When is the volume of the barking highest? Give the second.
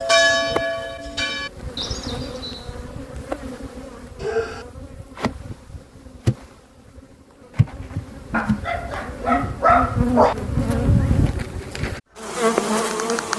10 s.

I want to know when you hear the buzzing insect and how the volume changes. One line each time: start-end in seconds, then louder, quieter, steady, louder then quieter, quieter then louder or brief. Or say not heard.
0.0-13.3 louder.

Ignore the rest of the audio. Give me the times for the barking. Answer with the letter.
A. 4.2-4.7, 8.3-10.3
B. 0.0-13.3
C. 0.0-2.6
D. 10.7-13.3
A.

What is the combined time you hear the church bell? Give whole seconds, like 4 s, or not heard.
3 s.